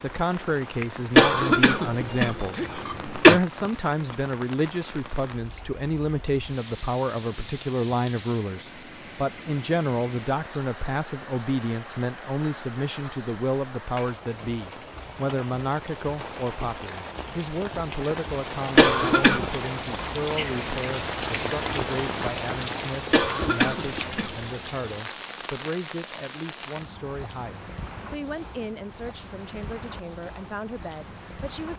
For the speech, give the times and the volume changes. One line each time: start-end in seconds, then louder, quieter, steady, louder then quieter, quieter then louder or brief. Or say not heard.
0.0-2.5 brief
3.2-31.7 quieter.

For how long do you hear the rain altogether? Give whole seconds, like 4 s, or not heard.
32 s.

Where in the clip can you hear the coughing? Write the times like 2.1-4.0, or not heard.
1.1-3.4, 18.8-19.5, 23.1-24.5.